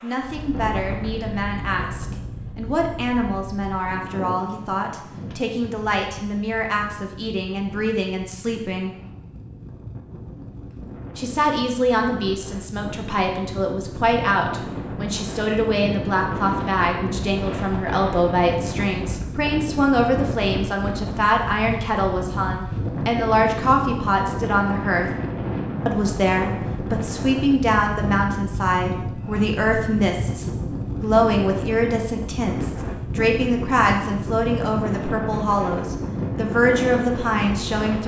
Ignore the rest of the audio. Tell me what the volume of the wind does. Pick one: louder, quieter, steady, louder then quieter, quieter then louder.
louder.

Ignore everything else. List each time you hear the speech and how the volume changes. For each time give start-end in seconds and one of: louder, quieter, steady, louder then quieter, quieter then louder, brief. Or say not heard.
0.0-8.9 steady
11.2-25.1 steady
25.9-38.0 steady.